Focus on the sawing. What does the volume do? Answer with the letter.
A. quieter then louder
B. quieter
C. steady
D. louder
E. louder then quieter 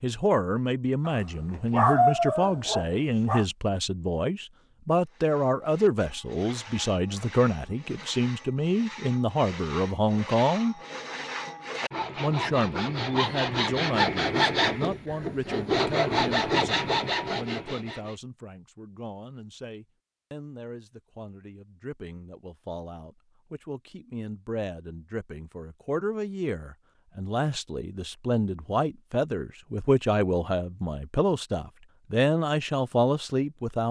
D.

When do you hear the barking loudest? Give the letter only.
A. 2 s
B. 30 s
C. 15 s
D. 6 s
A.